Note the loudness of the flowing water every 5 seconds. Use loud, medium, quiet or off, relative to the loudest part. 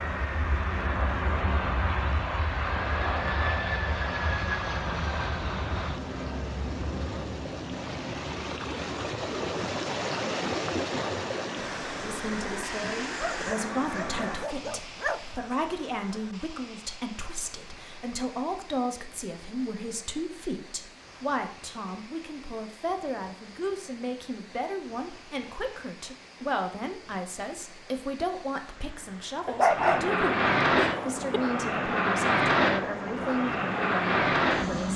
quiet, loud, loud, quiet, quiet, quiet, quiet.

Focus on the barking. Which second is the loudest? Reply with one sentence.
The loudest moment of the barking is at 30 seconds.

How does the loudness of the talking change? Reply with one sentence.
The volume of the talking stays about the same.